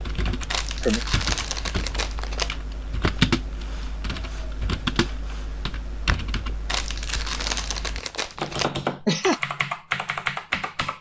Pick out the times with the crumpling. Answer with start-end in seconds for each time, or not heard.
0.5-2.5, 6.7-8.7.